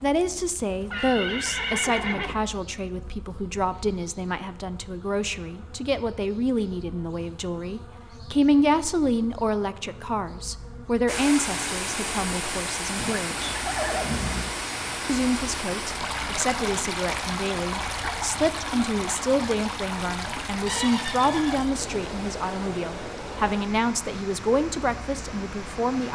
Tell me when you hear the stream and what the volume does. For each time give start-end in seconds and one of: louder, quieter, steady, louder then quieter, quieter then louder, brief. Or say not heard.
11.1-26.1 quieter.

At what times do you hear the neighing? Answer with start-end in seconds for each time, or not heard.
0.9-2.4, 12.9-14.6, 20.6-21.7.